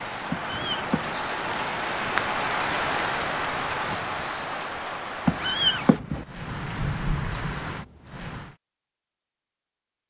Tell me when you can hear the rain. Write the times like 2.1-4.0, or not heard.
0.0-8.6.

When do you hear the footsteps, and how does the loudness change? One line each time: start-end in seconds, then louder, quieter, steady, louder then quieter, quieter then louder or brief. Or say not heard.
not heard.